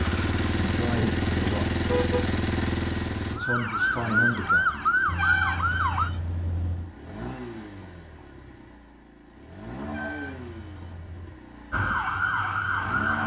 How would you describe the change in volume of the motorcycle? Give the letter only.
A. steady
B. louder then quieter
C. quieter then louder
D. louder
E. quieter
E.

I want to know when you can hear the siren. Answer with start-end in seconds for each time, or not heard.
3.2-6.1, 11.7-13.2.